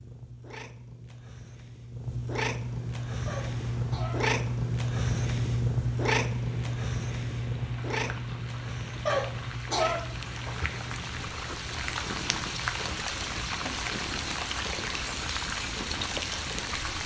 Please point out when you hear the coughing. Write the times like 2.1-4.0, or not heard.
3.2-4.2, 9.1-10.7.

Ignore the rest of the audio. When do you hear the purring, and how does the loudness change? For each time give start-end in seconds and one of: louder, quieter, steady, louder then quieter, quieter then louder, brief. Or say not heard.
0.0-16.9 louder then quieter.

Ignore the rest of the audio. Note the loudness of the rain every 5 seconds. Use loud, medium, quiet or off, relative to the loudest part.
quiet, quiet, loud, loud.